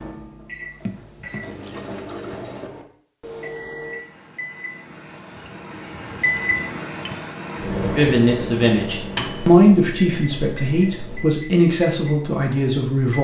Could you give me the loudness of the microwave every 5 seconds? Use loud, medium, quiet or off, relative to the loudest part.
medium, loud, medium.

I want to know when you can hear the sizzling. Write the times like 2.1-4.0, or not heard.
not heard.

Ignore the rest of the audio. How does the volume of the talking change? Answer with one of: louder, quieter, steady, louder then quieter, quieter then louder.
louder then quieter.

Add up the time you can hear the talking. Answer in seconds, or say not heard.
5 s.